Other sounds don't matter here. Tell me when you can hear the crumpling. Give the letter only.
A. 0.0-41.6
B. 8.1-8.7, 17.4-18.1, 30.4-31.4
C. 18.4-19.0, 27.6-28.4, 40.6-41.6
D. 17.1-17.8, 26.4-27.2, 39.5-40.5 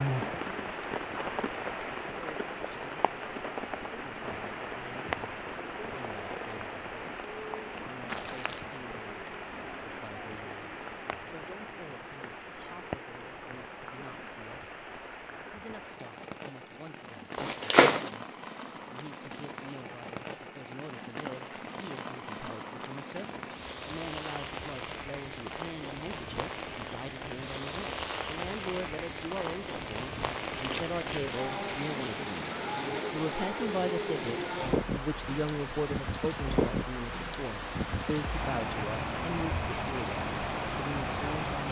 B.